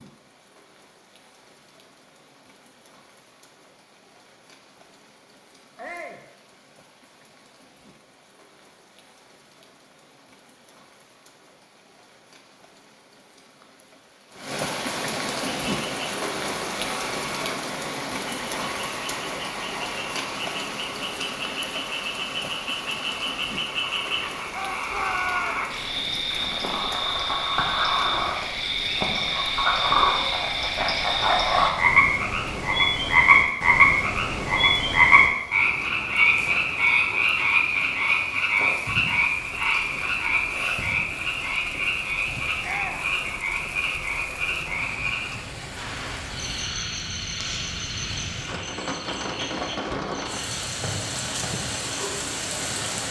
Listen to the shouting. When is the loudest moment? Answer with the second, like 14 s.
25 s.